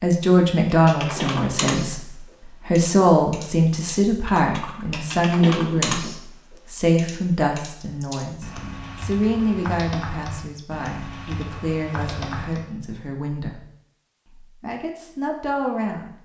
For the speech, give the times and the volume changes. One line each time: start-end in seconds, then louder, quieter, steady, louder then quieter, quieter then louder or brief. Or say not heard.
0.0-13.6 quieter
14.4-16.1 brief.